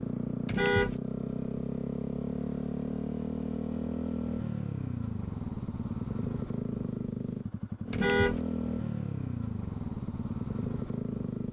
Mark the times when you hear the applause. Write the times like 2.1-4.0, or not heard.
not heard.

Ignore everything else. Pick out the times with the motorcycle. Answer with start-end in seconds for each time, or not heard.
0.0-11.4.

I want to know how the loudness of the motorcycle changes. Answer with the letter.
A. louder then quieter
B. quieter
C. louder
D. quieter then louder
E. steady
E.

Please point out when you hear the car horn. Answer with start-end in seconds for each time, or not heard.
0.5-1.0, 7.9-8.4.